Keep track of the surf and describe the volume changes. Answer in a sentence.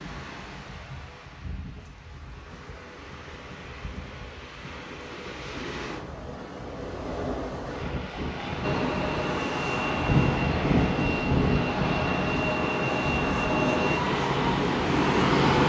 The loudness of the surf goes up.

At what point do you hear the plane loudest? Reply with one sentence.
The volume of the plane peaks at 15 seconds.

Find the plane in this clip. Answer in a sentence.
You can hear the plane from 8.6 to 15.6 s.